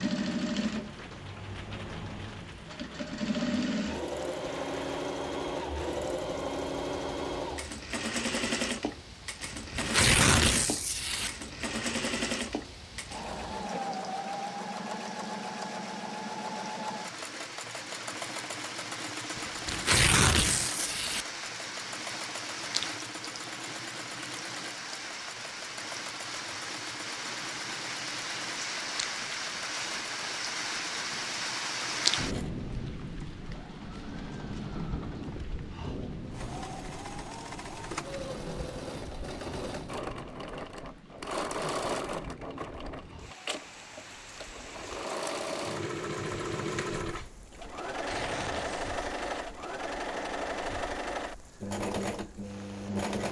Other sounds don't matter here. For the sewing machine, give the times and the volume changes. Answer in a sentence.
The sewing machine can be heard from 0.0 to 53.2 s, getting quieter then louder.